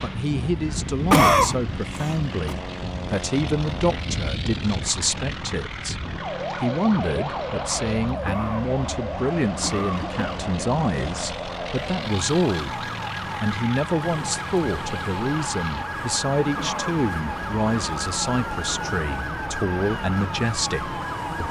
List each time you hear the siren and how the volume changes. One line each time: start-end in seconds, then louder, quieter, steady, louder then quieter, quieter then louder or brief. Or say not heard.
0.0-21.4 steady.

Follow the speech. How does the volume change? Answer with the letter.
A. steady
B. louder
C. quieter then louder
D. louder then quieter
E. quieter
A.